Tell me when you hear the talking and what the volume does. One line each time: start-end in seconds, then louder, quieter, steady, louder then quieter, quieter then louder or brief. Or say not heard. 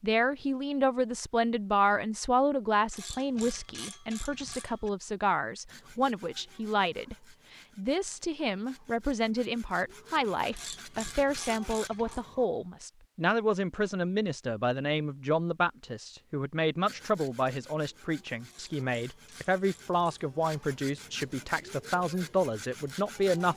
0.0-23.5 steady.